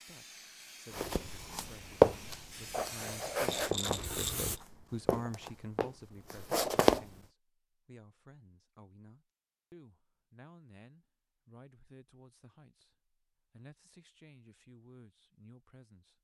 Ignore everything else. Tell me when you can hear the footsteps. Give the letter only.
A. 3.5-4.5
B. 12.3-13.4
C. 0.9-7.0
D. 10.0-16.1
C.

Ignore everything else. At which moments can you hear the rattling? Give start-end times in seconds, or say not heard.
3.5-4.5.